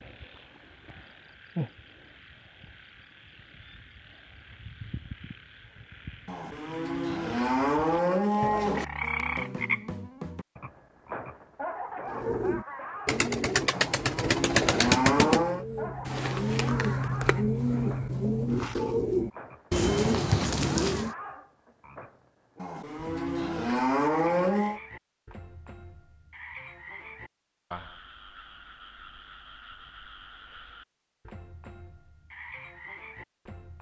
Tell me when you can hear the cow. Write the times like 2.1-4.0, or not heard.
6.2-8.8, 13.8-15.7, 22.6-24.8.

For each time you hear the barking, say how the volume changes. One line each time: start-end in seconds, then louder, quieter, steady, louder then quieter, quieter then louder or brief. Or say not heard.
not heard.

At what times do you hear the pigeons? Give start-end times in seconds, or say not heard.
12.1-21.1.